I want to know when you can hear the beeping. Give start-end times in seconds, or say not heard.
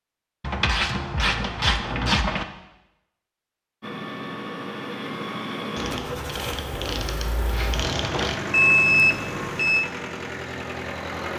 8.5-9.8.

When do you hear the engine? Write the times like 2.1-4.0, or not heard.
3.8-11.3.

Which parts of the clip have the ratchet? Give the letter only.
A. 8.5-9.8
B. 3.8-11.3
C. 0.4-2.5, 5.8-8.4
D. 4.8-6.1
C.